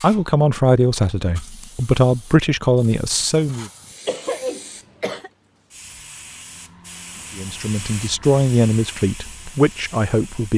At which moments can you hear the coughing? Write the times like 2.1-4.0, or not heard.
4.0-5.3.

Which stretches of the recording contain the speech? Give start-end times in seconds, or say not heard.
0.0-3.7, 7.3-10.5.